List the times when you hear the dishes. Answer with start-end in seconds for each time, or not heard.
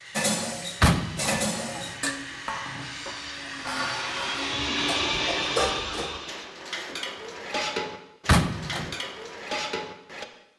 0.1-10.2.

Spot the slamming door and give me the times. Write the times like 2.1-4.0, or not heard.
0.8-1.4, 8.2-8.9.